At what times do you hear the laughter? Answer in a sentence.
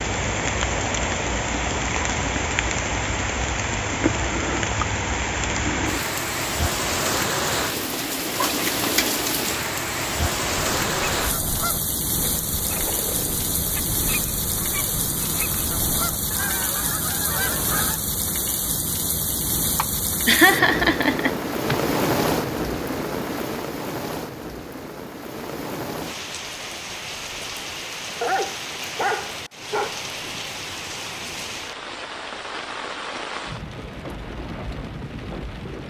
You can hear the laughter from 19.8 to 21.8 s.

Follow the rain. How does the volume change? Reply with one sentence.
The loudness of the rain goes down.